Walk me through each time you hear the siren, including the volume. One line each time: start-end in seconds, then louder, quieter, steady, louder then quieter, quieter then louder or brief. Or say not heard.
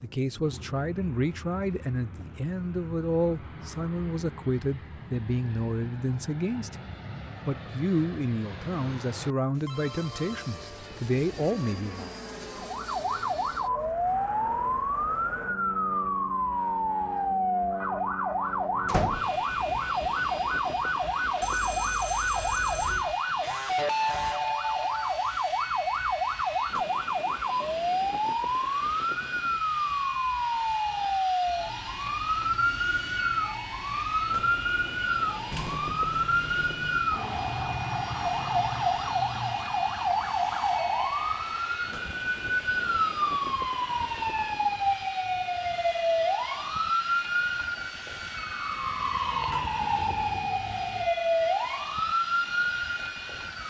12.6-53.6 steady.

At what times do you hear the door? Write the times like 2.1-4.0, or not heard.
18.9-19.4, 35.5-37.0.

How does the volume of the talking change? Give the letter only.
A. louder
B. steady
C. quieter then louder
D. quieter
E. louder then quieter
B.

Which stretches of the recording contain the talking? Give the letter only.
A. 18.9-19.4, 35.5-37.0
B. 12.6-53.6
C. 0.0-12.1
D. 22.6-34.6
C.